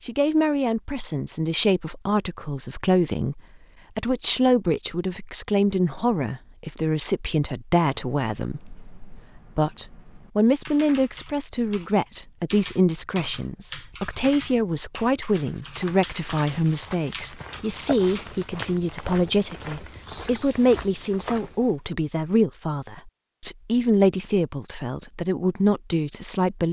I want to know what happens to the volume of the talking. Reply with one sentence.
The volume of the talking stays about the same.